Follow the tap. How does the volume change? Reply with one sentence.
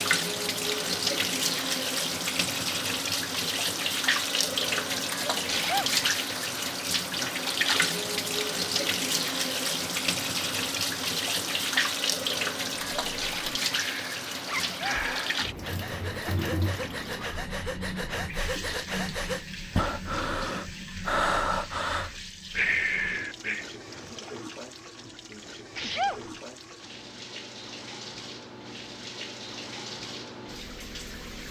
The loudness of the tap goes down.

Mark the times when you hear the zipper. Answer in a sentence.
The zipper can be heard from 14.4 to 14.8 s.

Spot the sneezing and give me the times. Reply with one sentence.
The sneezing can be heard from 5.5 to 6.0 s, from 14.6 to 15.0 s and from 25.8 to 26.3 s.